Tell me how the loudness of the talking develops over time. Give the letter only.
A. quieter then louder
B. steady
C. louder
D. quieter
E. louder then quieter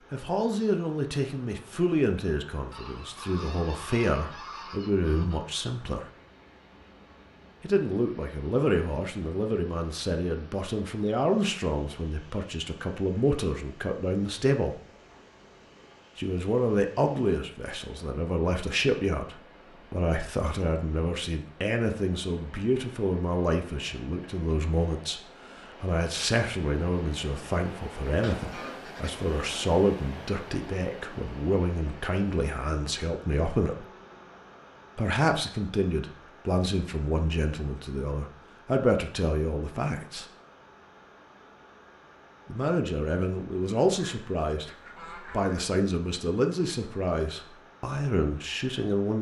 B.